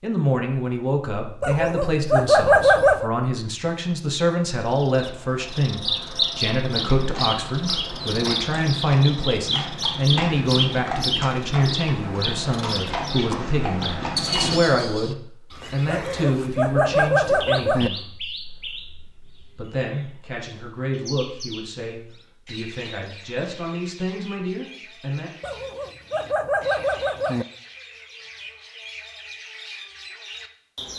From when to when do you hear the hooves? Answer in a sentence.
You can hear the hooves from 6.6 to 14.8 s.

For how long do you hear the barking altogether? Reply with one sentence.
The barking can be heard for 6 seconds in total.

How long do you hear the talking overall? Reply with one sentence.
The talking can be heard for 25 seconds in total.